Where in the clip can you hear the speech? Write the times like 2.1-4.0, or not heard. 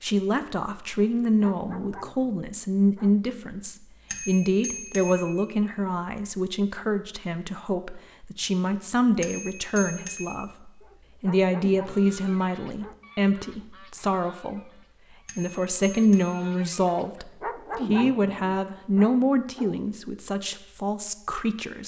0.0-14.7, 15.3-21.8.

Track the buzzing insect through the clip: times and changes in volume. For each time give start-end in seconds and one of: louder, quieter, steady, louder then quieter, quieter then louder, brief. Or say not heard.
not heard.